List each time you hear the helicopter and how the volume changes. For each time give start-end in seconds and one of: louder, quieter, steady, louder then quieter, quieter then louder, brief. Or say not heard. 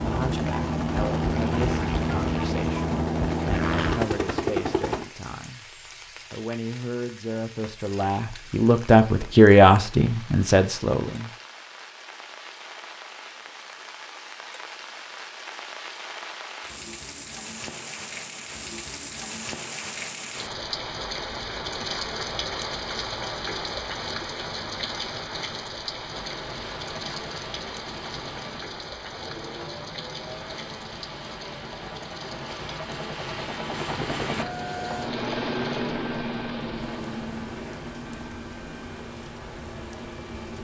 0.0-5.0 steady
26.1-40.5 louder then quieter.